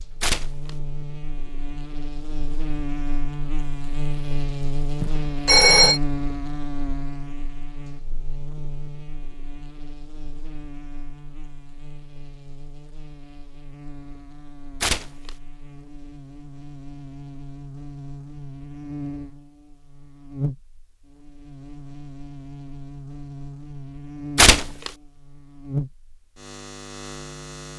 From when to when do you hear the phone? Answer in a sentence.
The phone can be heard from 5.0 to 6.0 s.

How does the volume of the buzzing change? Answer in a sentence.
The loudness of the buzzing goes down, then up.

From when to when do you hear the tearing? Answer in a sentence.
You can hear the tearing from 0.2 to 0.7 s, from 14.8 to 15.3 s and from 24.4 to 24.9 s.